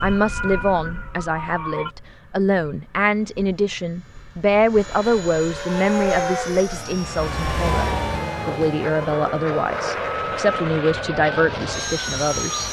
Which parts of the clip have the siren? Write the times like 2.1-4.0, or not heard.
0.0-1.9, 5.7-12.6.